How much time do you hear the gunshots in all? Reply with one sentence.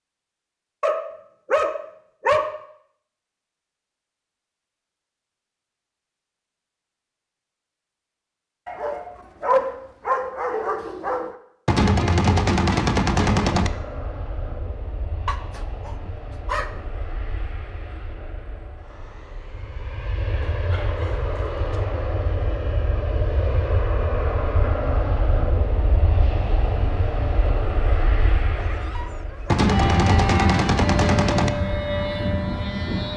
The gunshots can be heard for 4 seconds in total.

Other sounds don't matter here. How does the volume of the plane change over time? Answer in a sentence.
The loudness of the plane goes up.